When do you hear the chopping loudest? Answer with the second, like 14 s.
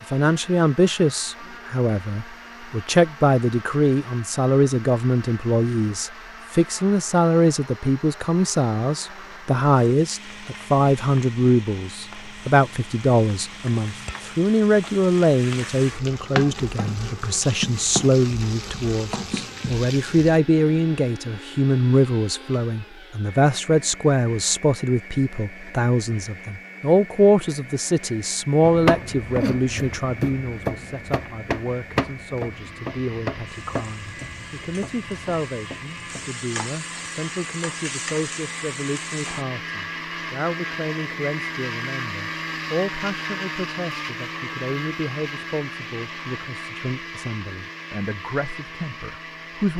29 s.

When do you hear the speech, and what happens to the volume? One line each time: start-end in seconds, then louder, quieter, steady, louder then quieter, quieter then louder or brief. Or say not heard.
0.1-49.7 quieter.